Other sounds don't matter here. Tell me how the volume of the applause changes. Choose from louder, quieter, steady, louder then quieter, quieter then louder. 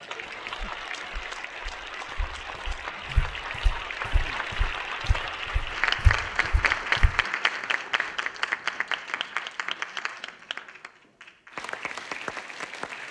louder then quieter.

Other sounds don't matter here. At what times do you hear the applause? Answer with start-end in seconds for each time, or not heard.
0.0-13.0.